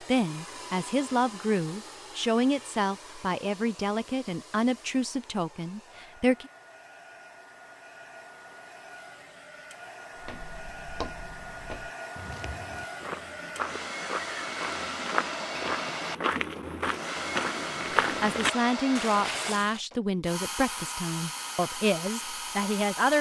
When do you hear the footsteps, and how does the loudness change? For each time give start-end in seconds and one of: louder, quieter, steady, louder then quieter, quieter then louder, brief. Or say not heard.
10.2-19.8 louder.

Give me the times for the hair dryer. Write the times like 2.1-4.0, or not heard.
0.0-23.1.